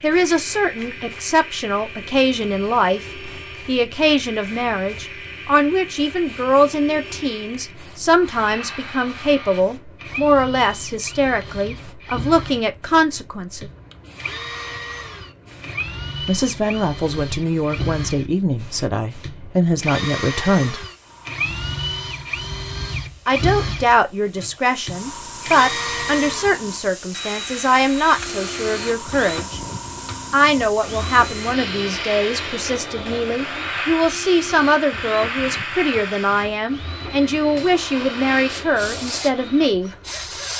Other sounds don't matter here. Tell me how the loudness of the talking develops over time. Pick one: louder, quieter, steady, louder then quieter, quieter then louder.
steady.